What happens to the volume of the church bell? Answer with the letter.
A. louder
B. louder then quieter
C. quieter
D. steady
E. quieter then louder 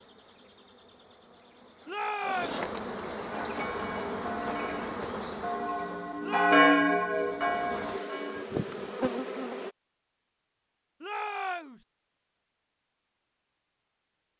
B.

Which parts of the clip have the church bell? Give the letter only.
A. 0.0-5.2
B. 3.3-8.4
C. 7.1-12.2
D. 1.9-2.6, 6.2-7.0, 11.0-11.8
B.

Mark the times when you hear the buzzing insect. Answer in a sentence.
The buzzing insect can be heard from 0.0 to 9.8 s.